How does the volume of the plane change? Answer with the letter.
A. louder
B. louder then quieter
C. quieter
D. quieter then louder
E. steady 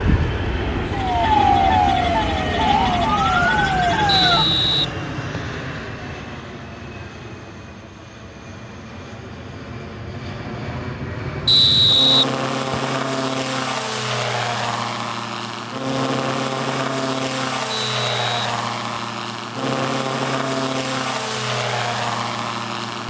D.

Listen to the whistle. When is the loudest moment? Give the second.
12 s.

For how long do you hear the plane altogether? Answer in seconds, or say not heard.
23 s.